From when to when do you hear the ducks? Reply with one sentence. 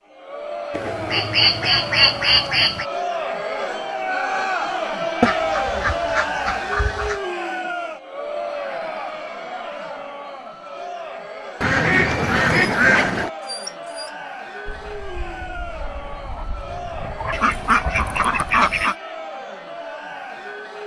You can hear the ducks from 0.7 to 2.9 s, from 5.2 to 7.2 s, from 11.6 to 13.3 s and from 17.3 to 18.9 s.